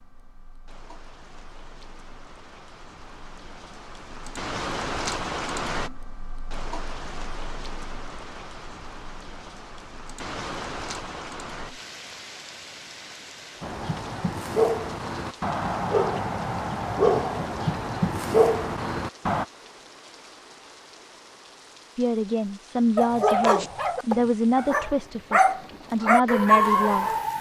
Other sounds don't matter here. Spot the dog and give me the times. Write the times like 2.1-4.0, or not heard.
13.6-19.4, 22.9-27.3.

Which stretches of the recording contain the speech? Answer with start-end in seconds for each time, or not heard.
21.9-27.1.